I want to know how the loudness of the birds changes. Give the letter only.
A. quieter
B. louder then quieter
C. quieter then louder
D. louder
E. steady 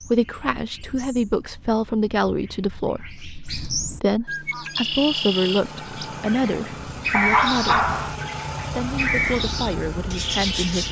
D.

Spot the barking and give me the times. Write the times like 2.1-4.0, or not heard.
7.1-8.2.